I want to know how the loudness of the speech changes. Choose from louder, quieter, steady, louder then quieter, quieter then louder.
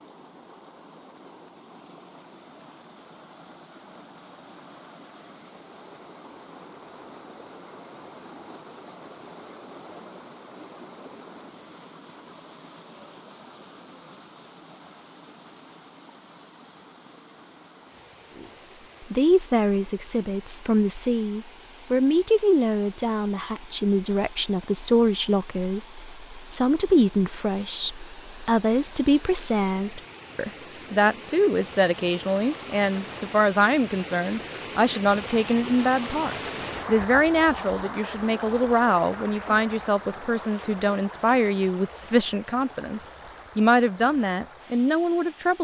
steady.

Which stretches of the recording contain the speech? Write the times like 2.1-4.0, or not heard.
18.4-45.5.